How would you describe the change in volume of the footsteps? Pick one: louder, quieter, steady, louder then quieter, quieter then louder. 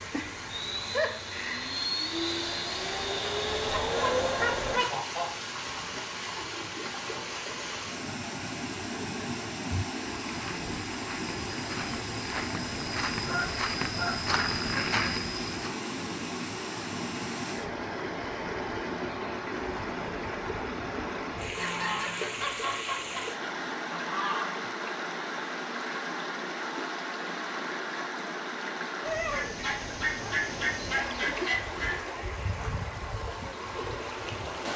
louder.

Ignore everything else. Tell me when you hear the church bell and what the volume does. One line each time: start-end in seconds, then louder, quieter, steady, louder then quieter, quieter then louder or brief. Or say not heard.
not heard.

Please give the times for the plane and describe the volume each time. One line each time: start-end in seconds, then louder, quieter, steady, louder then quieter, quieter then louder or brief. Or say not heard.
0.0-4.8 louder.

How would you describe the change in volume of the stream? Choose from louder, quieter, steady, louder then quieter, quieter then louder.
steady.